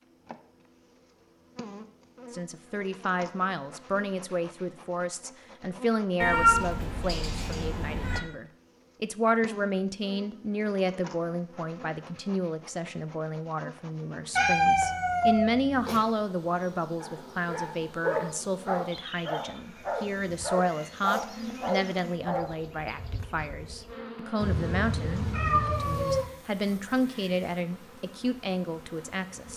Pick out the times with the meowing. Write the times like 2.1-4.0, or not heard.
6.2-8.2, 14.3-16.0, 24.4-26.2.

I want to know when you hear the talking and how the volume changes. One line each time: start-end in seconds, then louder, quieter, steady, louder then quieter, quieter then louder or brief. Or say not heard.
2.3-29.5 steady.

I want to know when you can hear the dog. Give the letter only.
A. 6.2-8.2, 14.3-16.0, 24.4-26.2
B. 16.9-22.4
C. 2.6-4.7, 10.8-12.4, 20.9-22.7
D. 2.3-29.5
B.